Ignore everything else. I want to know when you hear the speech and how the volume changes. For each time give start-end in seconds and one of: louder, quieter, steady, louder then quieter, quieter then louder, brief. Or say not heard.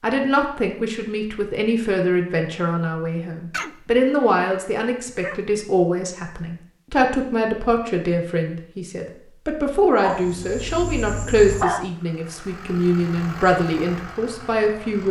0.0-15.0 steady.